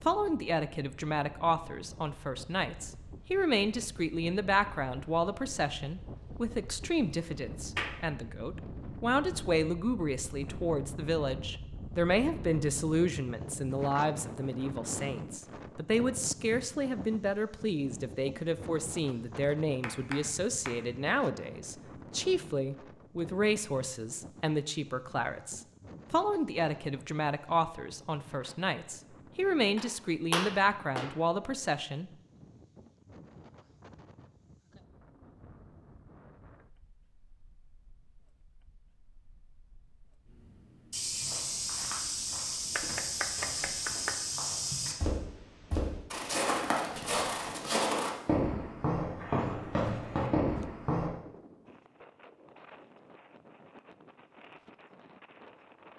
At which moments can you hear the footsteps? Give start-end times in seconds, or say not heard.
40.9-51.1.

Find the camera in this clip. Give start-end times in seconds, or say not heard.
not heard.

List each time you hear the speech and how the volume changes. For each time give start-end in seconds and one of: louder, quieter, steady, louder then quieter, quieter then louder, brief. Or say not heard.
0.0-32.1 steady.